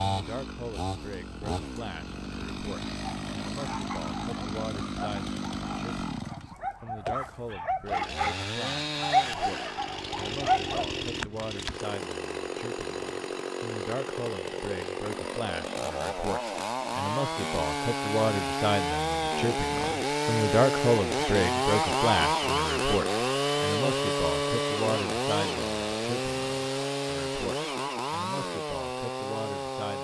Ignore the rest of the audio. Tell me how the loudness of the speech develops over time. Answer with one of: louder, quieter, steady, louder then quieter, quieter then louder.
louder then quieter.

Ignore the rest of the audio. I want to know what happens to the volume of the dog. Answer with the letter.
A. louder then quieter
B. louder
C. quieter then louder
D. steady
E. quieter
B.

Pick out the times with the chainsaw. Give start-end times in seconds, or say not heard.
0.0-29.9.